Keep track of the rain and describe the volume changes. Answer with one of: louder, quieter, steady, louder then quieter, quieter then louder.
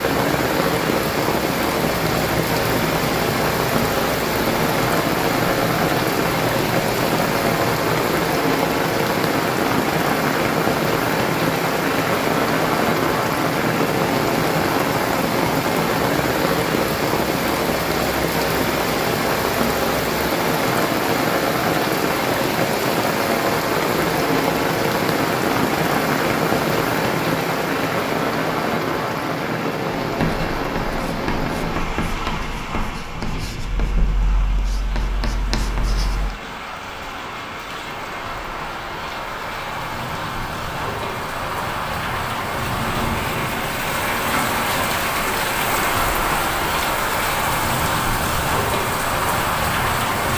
quieter then louder.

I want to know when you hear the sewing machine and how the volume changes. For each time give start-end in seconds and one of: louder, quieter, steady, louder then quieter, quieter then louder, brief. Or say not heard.
not heard.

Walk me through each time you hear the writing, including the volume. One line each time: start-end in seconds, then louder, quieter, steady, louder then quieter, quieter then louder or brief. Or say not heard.
1.9-8.1 steady
30.0-36.4 quieter then louder.